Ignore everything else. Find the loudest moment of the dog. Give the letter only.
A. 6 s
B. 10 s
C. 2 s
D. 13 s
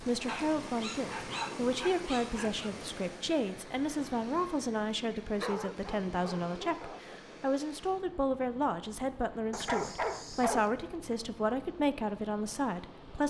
B.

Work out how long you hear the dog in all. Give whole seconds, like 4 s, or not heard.
6 s.